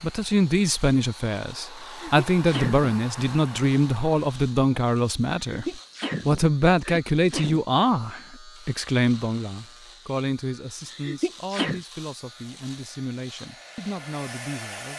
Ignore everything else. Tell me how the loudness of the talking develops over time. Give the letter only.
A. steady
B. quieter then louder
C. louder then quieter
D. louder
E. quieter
E.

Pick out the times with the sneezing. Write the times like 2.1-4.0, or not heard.
1.8-2.9, 5.5-7.6, 10.8-11.8.